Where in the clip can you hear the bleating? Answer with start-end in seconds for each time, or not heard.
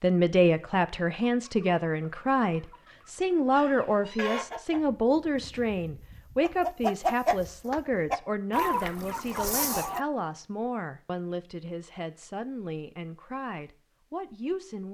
not heard.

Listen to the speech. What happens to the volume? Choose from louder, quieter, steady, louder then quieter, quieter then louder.
quieter.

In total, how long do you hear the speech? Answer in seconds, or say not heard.
15 s.